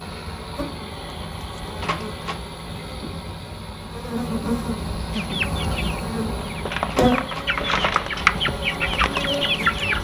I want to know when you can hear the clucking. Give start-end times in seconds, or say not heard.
5.1-9.9.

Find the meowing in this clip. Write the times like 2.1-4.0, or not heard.
not heard.